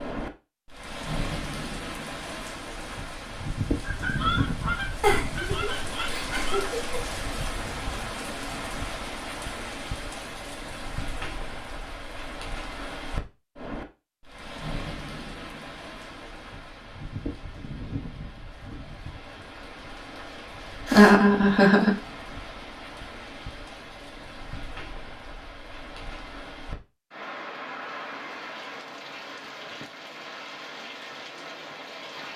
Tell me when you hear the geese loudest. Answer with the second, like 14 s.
4 s.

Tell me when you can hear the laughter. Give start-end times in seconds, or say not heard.
5.0-6.9, 20.9-21.9.